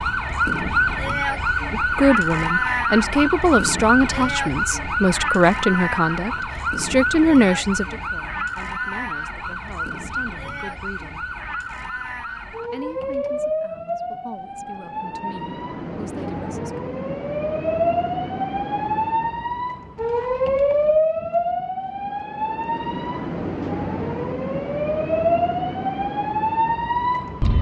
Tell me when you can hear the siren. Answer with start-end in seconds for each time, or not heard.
0.0-27.5.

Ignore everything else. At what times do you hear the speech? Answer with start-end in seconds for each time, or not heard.
1.8-11.3, 12.7-16.8.